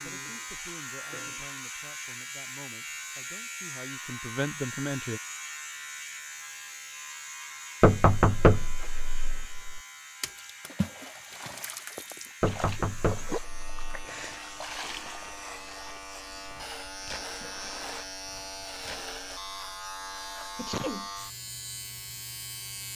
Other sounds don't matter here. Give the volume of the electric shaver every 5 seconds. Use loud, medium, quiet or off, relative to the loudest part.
loud, loud, medium, loud, loud.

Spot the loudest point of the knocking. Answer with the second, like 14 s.
8 s.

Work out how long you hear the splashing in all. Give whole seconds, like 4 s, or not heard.
10 s.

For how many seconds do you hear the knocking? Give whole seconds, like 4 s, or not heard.
3 s.